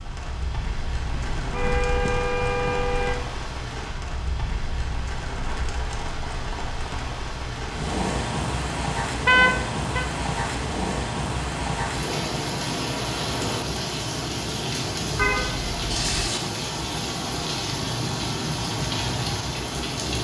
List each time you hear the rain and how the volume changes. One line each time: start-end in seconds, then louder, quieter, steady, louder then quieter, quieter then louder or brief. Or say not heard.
0.0-20.1 louder.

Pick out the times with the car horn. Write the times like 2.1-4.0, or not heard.
1.1-3.1, 9.2-10.1, 15.2-16.3.